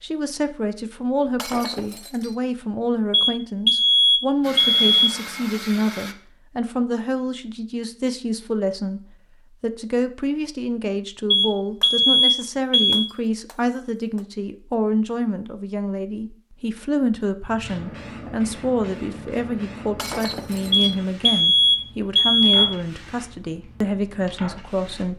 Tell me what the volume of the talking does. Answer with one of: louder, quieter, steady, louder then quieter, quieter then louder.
steady.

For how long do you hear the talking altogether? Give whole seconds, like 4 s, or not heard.
25 s.